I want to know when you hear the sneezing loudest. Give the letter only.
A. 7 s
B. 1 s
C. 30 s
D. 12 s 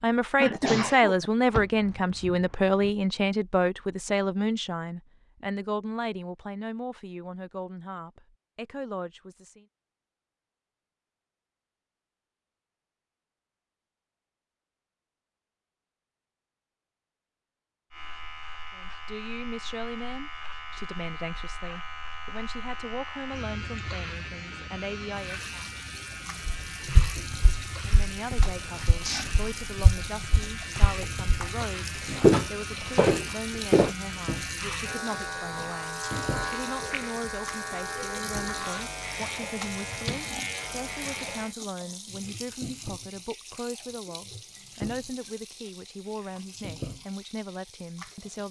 B.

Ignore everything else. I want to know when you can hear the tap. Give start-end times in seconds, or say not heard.
25.1-48.4.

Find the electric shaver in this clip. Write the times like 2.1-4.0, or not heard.
17.9-41.5.